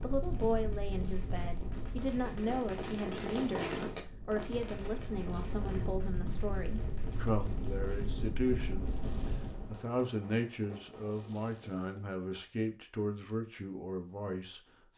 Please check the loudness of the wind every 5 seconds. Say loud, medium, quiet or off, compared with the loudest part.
loud, loud, off.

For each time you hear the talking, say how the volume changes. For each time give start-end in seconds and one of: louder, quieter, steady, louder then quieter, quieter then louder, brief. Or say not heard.
0.0-14.6 steady.